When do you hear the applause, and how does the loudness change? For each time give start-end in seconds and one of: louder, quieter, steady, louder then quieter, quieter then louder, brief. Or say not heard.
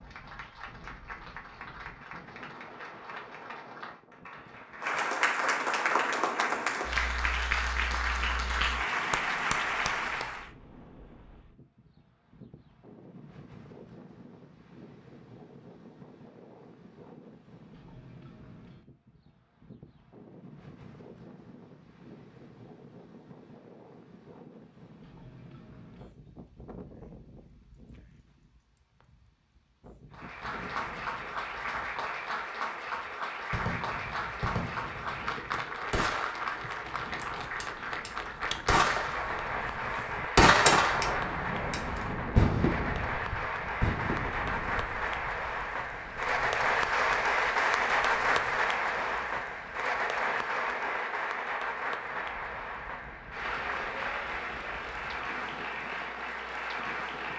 0.0-10.5 louder
30.1-57.3 louder then quieter.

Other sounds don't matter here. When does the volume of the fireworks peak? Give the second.
41 s.